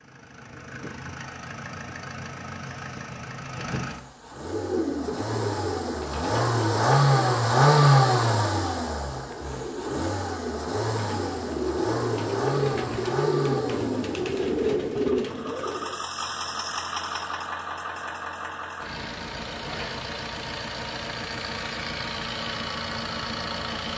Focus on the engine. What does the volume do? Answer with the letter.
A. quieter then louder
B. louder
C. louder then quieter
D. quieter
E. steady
C.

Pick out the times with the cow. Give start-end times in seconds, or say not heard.
not heard.